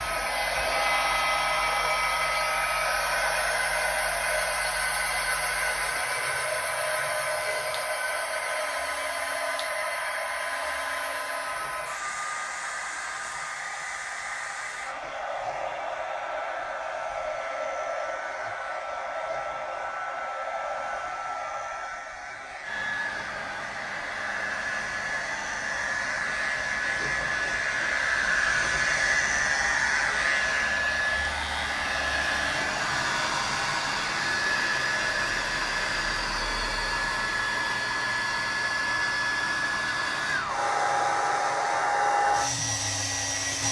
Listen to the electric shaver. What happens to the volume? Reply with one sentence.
The loudness of the electric shaver goes up, then down.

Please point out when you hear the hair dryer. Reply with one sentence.
You can hear the hair dryer from 0.0 to 43.6 s.